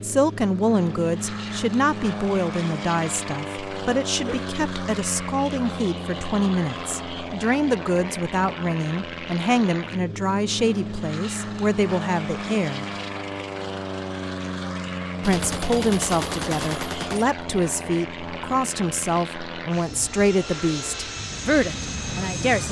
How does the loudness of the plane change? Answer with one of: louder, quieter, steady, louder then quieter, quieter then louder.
steady.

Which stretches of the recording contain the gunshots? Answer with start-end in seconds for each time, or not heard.
15.2-17.2.